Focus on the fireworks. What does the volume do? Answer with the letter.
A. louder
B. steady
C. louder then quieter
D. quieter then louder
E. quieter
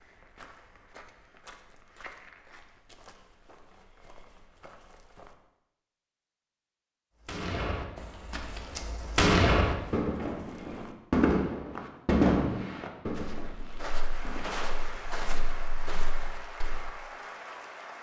C.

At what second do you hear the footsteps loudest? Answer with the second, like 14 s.
15 s.